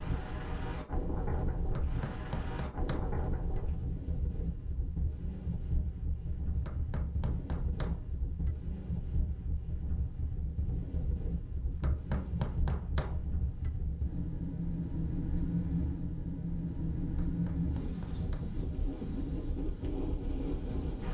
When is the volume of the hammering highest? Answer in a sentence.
The loudest moment of the hammering is at 12 seconds.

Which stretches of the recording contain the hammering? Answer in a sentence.
You can hear the hammering from 1.6 to 3.6 s, from 6.5 to 8.6 s, from 11.7 to 13.7 s and from 17.1 to 19.1 s.